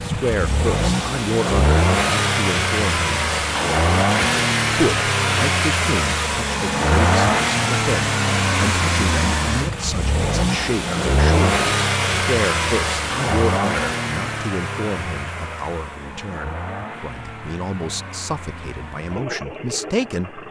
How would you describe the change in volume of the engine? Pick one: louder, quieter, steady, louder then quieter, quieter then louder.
quieter.